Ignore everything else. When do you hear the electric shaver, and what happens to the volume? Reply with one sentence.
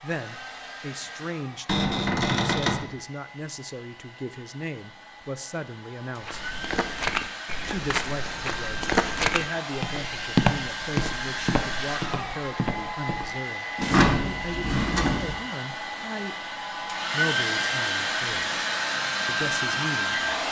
You can't hear the electric shaver here.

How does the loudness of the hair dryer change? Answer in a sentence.
The loudness of the hair dryer goes up.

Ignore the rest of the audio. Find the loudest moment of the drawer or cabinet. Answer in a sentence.
The loudest moment of the drawer or cabinet is at 14 seconds.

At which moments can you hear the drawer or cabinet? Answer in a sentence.
The drawer or cabinet can be heard from 1.6 to 2.9 s and from 13.8 to 15.3 s.